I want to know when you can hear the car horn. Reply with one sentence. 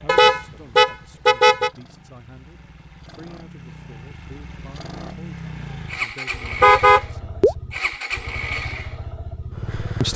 The car horn can be heard from 0.1 to 1.7 s and from 6.6 to 7.5 s.